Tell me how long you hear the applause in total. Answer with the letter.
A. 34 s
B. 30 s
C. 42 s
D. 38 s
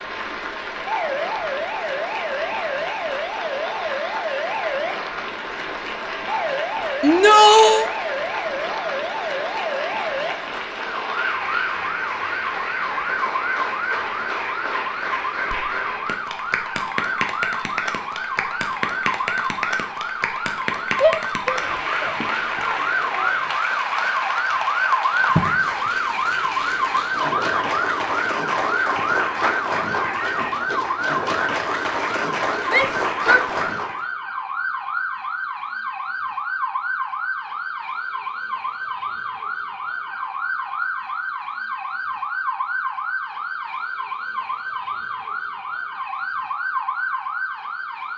A.